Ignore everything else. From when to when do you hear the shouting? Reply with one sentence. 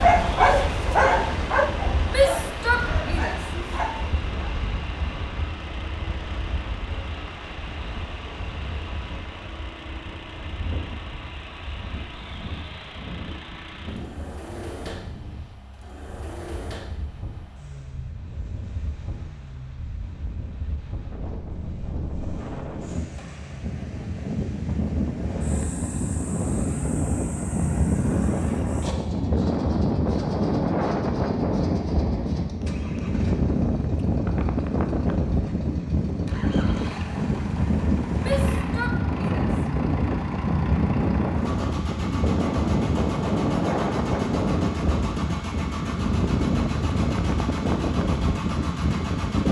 You can hear the shouting from 2.0 to 3.4 s and from 38.2 to 39.5 s.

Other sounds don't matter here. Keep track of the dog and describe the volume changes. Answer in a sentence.
The loudness of the dog goes down.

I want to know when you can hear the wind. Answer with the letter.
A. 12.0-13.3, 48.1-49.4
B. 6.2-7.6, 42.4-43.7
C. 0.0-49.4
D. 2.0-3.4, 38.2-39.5
C.